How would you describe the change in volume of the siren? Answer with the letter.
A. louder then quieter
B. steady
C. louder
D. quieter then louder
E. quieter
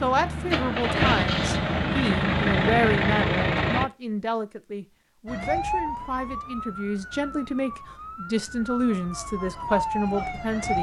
D.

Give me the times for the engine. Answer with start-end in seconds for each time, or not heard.
0.0-3.9.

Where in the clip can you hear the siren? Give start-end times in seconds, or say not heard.
5.2-10.7.